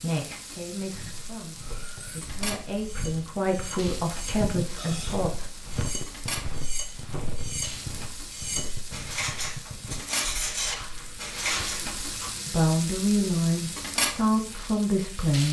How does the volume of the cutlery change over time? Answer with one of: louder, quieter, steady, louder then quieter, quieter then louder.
louder.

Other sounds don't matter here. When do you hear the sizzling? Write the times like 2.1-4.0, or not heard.
0.0-15.4.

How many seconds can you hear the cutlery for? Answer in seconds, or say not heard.
10 s.